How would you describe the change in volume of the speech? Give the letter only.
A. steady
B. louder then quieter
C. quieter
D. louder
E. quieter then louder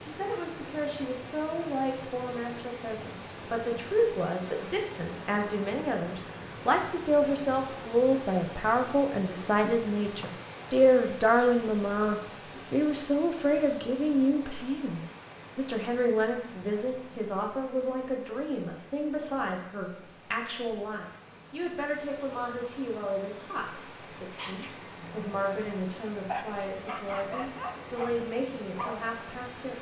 B.